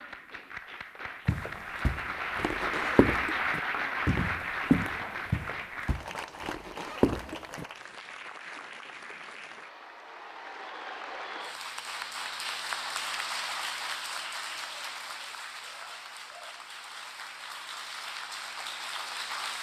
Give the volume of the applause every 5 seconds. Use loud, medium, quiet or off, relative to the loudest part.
loud, medium, loud, medium.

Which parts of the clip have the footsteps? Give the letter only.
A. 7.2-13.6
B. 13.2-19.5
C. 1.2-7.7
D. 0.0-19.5
C.